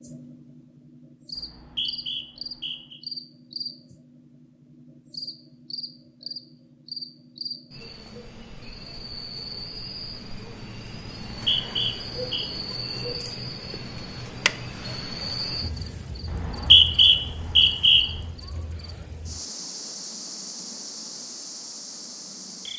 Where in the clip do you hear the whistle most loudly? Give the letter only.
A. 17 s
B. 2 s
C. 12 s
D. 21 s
A.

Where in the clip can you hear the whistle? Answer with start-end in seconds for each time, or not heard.
1.4-3.0, 11.3-12.4, 16.3-18.1.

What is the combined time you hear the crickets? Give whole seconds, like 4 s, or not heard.
23 s.